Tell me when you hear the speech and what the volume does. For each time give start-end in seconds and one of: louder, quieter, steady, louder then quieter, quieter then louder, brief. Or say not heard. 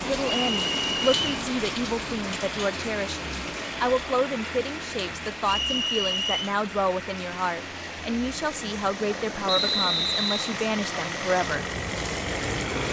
0.0-11.7 steady.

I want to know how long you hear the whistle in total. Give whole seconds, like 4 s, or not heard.
3 s.